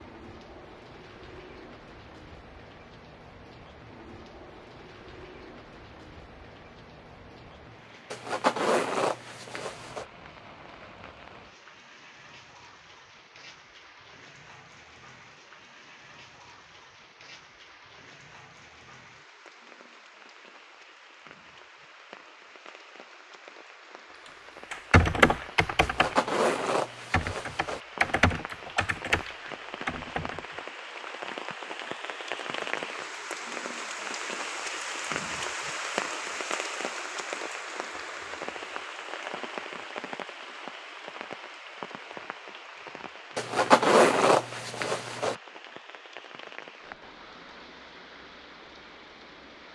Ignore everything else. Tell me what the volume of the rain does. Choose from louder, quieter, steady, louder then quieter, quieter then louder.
louder then quieter.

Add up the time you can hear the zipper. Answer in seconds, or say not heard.
6 s.